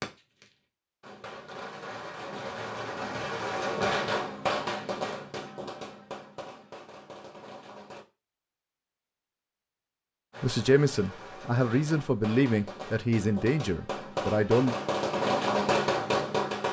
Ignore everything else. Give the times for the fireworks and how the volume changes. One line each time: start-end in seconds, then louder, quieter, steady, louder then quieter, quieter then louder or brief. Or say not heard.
0.0-8.1 louder then quieter
10.3-16.6 louder.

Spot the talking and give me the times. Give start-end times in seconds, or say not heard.
10.4-14.8.